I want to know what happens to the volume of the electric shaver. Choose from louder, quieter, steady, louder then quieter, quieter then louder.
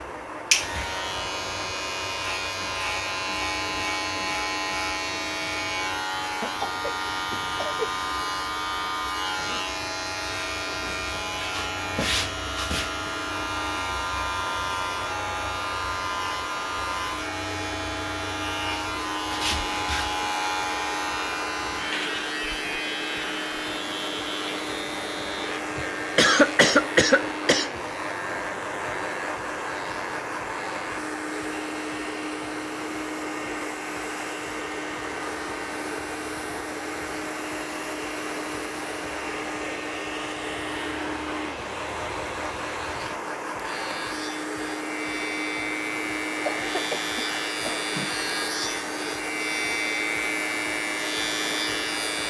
quieter then louder.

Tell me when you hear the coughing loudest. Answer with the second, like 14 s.
26 s.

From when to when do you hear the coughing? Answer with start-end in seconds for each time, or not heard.
6.4-7.9, 25.8-27.7, 46.5-48.0.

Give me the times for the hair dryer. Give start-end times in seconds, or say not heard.
0.0-52.2.